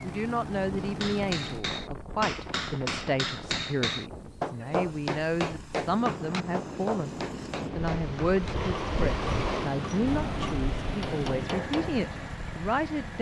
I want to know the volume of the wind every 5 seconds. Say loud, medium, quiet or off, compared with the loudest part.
medium, loud, loud.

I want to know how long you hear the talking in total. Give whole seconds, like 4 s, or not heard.
13 s.